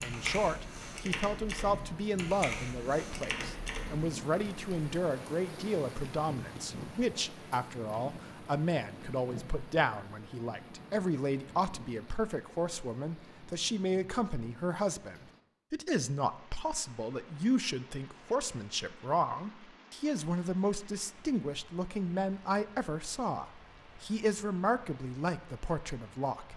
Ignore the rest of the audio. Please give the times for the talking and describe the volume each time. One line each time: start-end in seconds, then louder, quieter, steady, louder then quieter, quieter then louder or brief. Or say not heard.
0.0-26.5 steady.